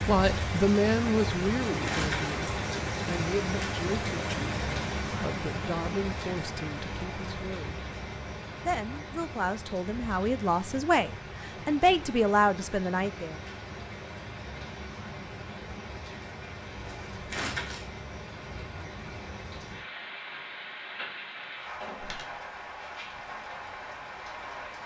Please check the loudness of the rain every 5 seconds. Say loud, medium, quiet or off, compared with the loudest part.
loud, medium, medium, medium, medium.